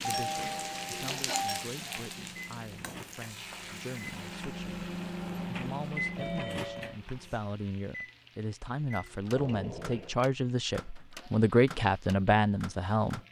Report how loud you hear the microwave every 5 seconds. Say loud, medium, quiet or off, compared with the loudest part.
medium, loud, medium.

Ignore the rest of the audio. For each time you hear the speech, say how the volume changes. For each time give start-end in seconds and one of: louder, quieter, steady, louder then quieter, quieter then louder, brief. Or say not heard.
0.0-13.2 louder.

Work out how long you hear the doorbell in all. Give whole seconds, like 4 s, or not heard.
3 s.